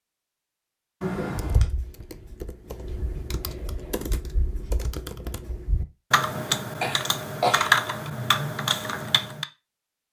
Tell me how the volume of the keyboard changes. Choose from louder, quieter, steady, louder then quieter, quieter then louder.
louder.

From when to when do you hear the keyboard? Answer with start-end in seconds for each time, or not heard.
1.2-9.4.